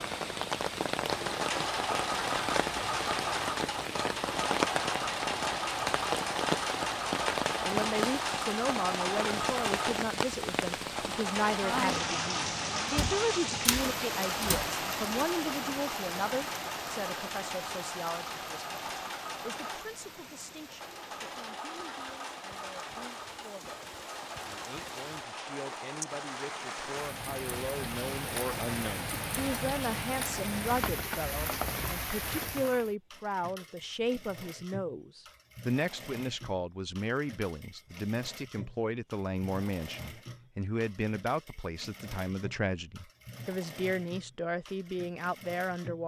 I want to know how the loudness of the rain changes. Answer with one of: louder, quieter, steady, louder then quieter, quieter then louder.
quieter then louder.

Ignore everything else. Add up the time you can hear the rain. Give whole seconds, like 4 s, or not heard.
33 s.